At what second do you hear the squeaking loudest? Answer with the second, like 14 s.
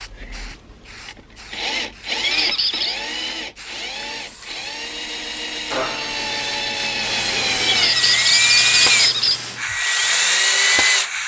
8 s.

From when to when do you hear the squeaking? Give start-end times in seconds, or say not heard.
2.2-3.0, 7.7-9.4.